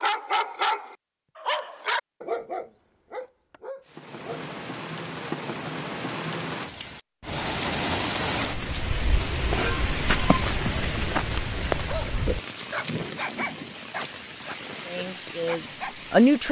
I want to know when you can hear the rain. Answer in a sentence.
You can hear the rain from 3.9 to 16.4 s.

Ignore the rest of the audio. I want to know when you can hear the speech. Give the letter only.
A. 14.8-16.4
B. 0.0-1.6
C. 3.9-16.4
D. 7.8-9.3
A.